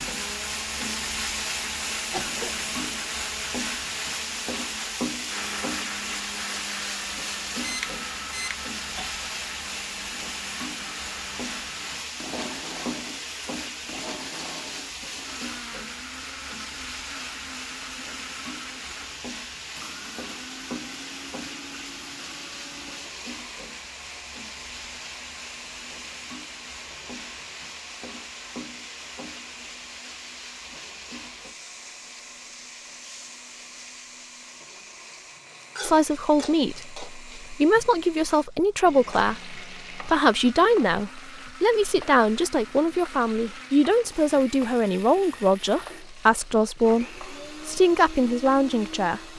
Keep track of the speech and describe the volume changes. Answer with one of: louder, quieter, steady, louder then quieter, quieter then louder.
steady.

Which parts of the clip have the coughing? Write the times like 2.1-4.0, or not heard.
2.1-3.0.